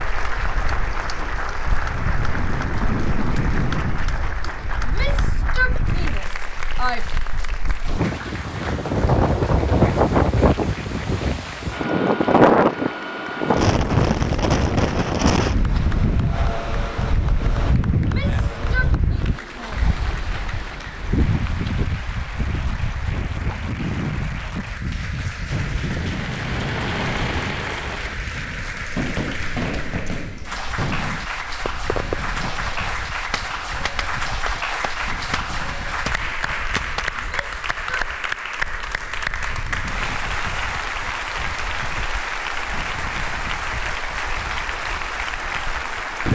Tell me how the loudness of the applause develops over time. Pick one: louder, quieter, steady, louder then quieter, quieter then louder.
quieter then louder.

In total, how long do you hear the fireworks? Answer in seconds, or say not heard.
12 s.